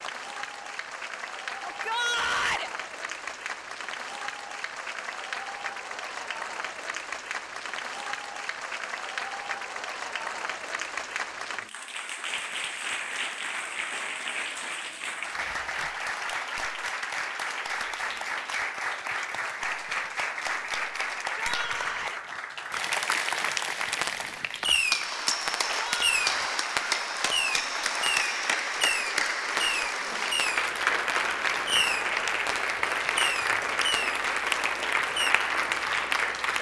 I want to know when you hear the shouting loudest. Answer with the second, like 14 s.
2 s.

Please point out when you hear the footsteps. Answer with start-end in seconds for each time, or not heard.
not heard.